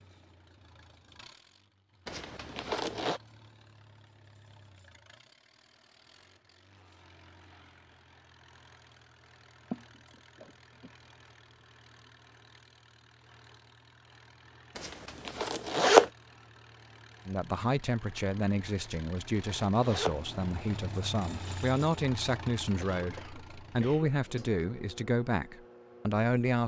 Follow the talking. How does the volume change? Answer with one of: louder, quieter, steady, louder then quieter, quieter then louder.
steady.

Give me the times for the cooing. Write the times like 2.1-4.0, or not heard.
not heard.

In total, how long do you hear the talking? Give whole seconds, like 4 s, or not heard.
9 s.